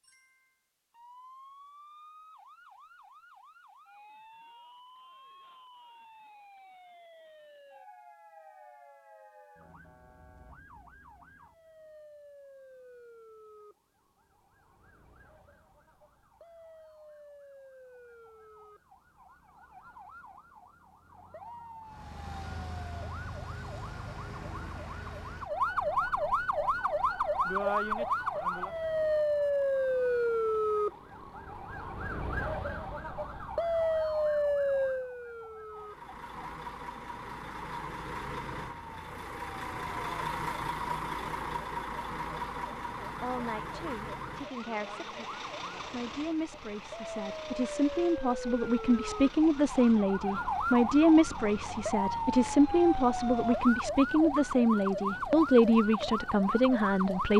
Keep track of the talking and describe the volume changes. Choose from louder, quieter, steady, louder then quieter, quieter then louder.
louder.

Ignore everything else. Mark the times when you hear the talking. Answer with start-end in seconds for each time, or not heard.
43.2-57.3.